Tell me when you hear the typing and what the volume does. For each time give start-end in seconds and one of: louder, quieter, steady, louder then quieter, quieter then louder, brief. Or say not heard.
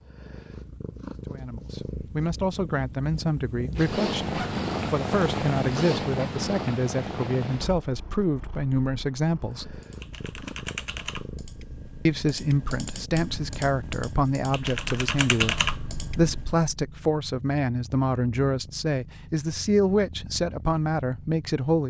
9.7-16.6 quieter then louder.